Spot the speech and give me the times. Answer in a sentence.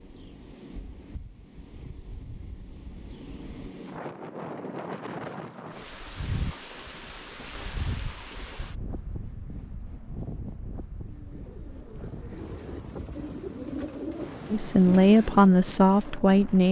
You can hear the speech from 14.5 to 16.6 s.